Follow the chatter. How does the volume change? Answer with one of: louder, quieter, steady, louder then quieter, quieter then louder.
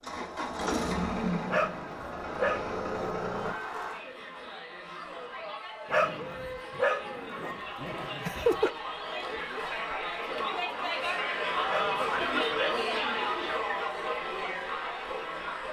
louder.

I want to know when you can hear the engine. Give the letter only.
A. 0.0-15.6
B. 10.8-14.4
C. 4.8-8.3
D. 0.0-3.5
D.